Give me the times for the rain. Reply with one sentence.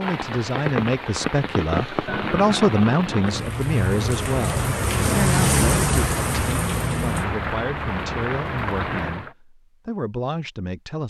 The rain can be heard from 0.0 to 9.3 s.